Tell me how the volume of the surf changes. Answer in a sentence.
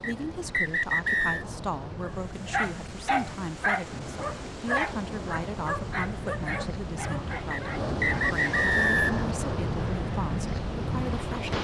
The loudness of the surf goes up.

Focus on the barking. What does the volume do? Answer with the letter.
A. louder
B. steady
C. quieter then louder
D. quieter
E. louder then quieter
D.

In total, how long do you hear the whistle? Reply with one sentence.
You can hear the whistle for 3 seconds altogether.